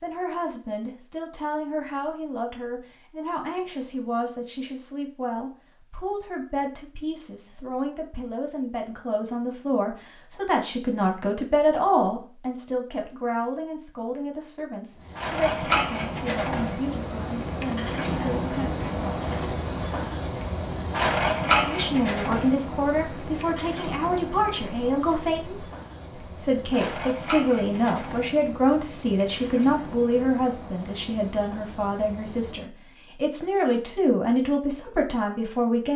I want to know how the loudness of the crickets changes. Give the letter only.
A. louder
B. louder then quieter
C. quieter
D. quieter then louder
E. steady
C.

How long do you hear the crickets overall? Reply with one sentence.
You can hear the crickets for 21 seconds altogether.